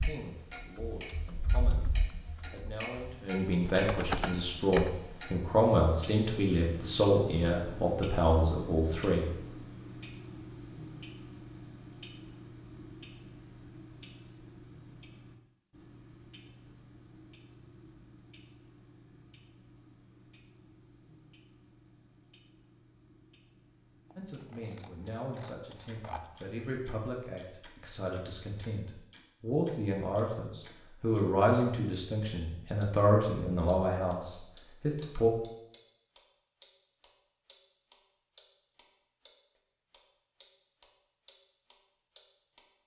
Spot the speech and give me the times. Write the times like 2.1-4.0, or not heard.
0.0-9.3, 24.1-35.3.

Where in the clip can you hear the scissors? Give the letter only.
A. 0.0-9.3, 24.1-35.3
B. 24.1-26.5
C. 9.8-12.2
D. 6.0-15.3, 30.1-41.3
B.